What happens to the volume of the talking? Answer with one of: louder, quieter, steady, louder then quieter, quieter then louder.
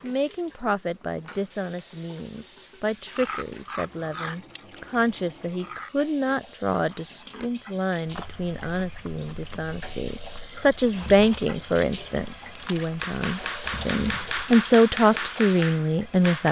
louder.